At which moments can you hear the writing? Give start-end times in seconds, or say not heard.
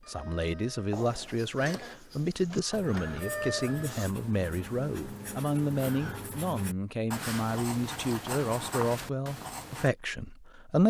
0.9-9.9.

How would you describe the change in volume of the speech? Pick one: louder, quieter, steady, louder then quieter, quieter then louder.
steady.